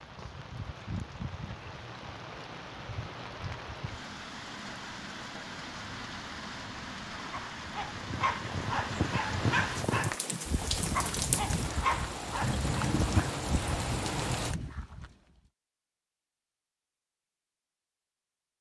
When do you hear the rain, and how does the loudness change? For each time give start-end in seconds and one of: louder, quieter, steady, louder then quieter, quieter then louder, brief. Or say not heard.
0.0-14.6 louder.